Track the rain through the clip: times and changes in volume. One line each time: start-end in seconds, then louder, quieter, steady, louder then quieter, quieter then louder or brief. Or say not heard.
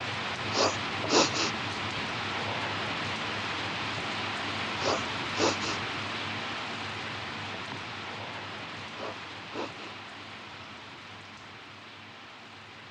0.0-12.8 quieter.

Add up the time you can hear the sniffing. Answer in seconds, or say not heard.
3 s.